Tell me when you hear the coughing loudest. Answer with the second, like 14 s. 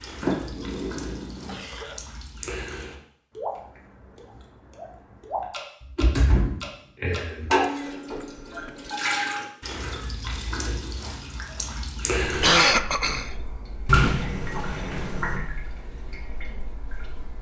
13 s.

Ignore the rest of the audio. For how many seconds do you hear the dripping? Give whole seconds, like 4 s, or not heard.
17 s.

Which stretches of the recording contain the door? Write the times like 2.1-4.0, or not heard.
0.2-1.6, 5.8-7.5, 13.8-15.4.